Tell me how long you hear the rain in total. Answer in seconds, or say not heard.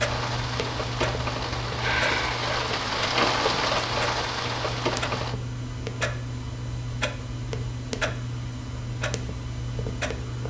5 s.